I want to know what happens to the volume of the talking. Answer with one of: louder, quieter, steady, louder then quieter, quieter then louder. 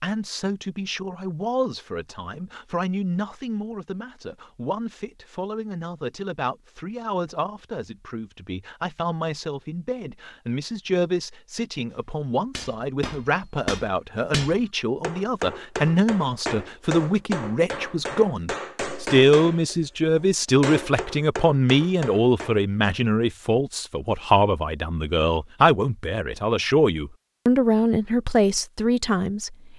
louder.